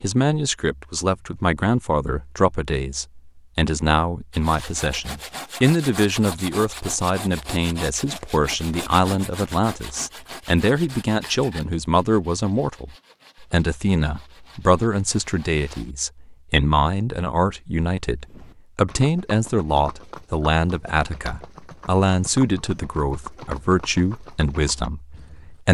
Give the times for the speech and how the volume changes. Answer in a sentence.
You can hear the speech from 0.0 to 25.7 s, at a steady volume.